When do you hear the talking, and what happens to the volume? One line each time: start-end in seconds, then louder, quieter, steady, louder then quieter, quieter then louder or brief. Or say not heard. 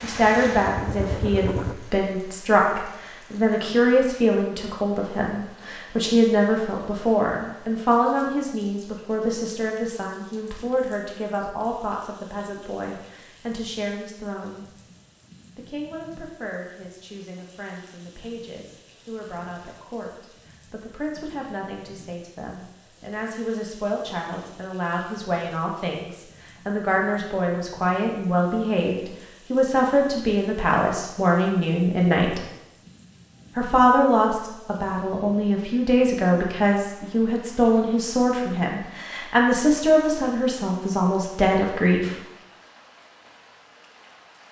0.0-14.7 quieter
15.6-32.4 louder
33.5-42.1 steady.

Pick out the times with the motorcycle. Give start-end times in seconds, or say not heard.
0.2-1.8.